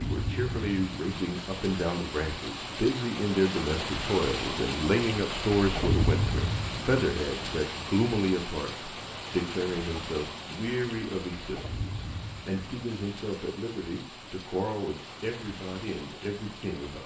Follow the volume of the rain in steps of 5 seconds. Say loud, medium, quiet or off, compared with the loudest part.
loud, loud, medium, medium.